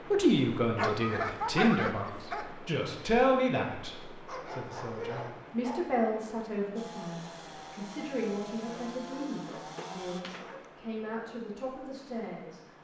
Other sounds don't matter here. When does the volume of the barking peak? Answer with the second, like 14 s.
2 s.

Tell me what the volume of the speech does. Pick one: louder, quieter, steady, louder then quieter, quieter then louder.
quieter.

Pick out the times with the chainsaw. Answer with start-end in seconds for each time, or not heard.
6.8-10.2.